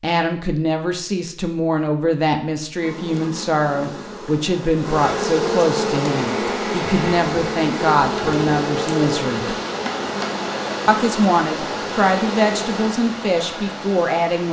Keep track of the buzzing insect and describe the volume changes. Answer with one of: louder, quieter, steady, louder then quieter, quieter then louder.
louder then quieter.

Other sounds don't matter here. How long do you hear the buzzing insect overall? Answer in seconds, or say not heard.
10 s.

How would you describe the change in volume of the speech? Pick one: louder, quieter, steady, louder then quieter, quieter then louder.
steady.